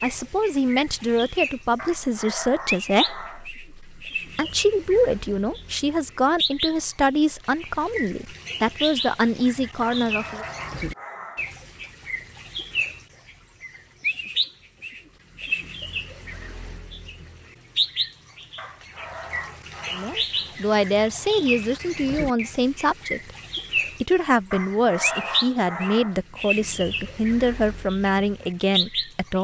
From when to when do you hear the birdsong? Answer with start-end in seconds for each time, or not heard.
0.0-29.4.